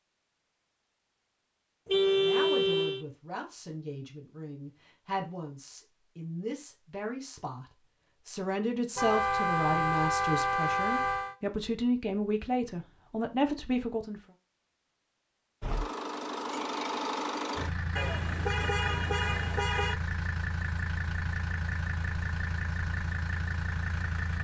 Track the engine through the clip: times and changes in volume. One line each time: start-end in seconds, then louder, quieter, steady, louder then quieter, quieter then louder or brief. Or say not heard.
15.6-24.3 steady.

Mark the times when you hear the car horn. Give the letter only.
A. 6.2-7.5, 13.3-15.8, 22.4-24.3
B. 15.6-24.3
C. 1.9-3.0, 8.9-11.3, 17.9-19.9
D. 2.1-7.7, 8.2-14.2
C.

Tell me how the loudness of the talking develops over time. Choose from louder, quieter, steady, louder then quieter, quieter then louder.
louder.